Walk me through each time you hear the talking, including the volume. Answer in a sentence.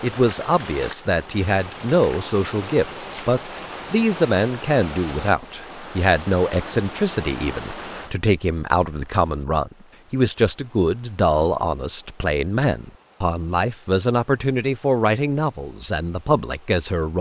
The talking can be heard from 0.0 to 17.1 s, at a steady volume.